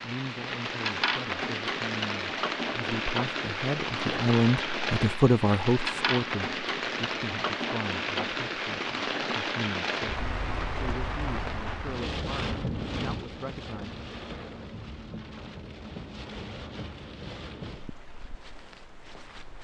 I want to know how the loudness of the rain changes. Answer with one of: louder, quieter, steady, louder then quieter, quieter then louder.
quieter.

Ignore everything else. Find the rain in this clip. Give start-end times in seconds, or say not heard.
0.0-19.6.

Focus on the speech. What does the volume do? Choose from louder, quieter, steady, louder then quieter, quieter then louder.
louder then quieter.